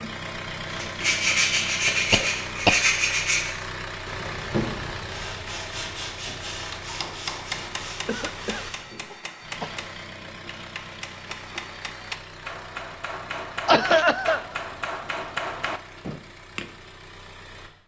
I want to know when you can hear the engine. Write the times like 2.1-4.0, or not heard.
0.0-17.8.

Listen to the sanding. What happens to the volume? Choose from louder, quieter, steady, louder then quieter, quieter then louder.
quieter.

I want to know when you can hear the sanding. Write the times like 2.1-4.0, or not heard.
0.7-9.1.